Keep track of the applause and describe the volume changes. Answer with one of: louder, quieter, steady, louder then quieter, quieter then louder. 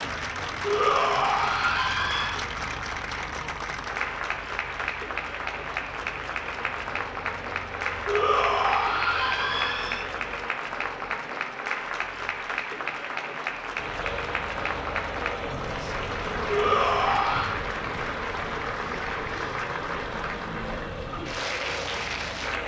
steady.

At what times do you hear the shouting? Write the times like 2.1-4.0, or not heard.
0.6-2.5, 8.1-10.1, 16.4-17.6.